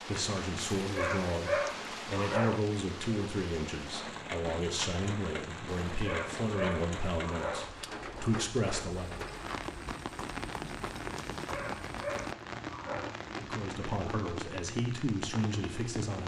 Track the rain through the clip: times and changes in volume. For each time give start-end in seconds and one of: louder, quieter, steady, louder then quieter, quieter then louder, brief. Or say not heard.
0.0-16.2 steady.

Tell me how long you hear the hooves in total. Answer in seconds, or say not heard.
3 s.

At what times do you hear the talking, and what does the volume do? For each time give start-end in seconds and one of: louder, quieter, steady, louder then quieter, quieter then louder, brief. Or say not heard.
0.1-9.3 steady
13.3-16.2 brief.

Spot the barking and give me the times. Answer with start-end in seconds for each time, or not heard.
0.8-2.6, 5.7-7.7, 11.4-13.2.